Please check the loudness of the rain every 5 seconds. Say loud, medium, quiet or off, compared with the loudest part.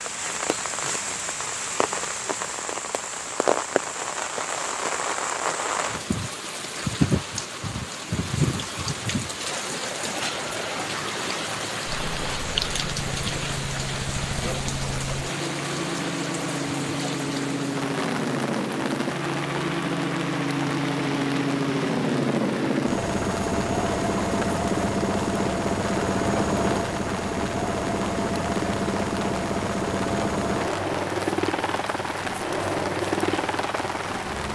loud, loud, loud, medium, medium, medium, medium.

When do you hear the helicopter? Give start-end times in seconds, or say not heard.
11.8-34.5.